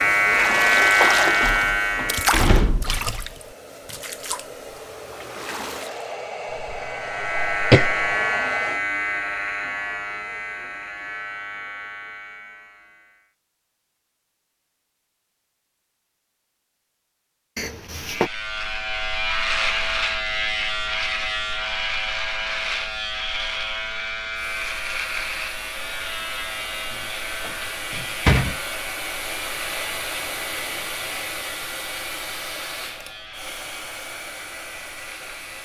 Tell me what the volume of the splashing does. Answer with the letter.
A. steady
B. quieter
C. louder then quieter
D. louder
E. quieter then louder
B.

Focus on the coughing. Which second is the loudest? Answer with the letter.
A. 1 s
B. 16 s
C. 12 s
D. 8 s
D.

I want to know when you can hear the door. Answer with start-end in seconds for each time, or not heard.
1.4-3.1, 17.6-18.3, 26.9-28.6.